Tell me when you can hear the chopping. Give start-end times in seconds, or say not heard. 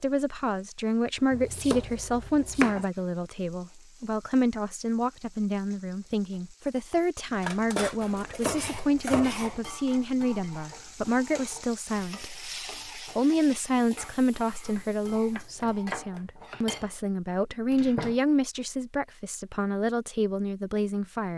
1.3-2.9, 8.0-9.6, 14.8-16.8.